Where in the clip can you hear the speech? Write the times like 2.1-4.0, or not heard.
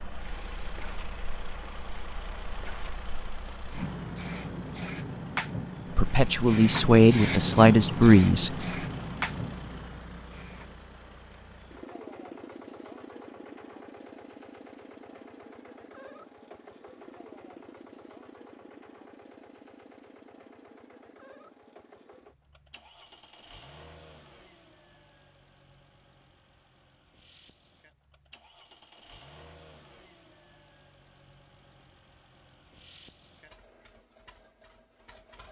6.0-8.7.